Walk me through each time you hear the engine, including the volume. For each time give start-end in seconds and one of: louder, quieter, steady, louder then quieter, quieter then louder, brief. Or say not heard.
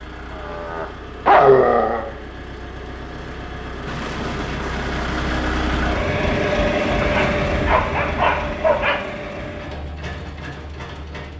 0.0-11.3 louder then quieter.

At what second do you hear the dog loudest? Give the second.
1 s.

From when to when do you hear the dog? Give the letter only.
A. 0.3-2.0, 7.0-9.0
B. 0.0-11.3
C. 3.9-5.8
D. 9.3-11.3
A.